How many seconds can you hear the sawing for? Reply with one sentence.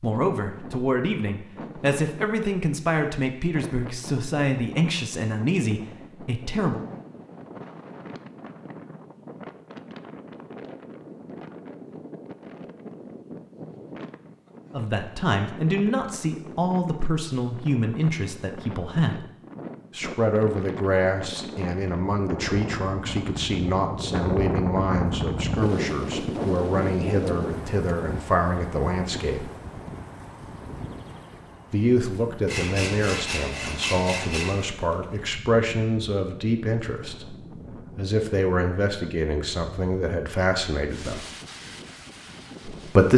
The sawing can be heard for 2 seconds in total.